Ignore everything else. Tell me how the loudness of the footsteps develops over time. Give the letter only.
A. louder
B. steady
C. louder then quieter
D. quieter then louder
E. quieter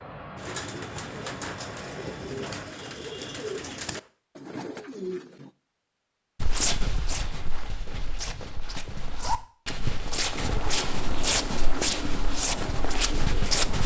A.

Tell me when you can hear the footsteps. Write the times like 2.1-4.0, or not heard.
6.4-13.8.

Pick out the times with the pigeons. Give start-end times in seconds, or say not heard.
0.3-5.5.